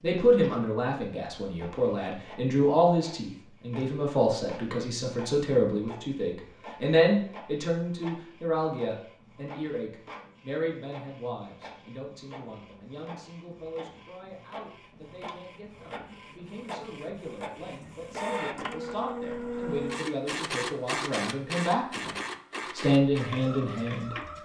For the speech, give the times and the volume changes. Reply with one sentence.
The speech can be heard from 0.0 to 22.1 s, getting quieter then louder; and briefly from 22.8 to 24.1 s.